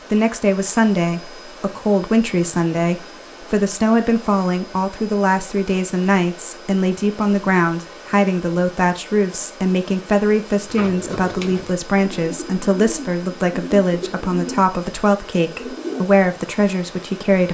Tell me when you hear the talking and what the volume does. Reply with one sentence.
The talking can be heard from 0.1 to 17.5 s, at a steady volume.